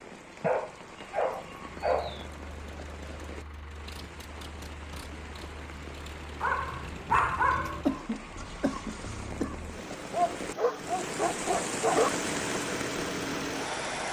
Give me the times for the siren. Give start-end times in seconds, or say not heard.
not heard.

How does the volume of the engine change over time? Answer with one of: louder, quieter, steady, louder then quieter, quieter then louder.
louder.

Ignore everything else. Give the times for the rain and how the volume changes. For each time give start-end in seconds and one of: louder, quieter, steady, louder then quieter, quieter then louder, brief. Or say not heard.
0.0-14.0 louder.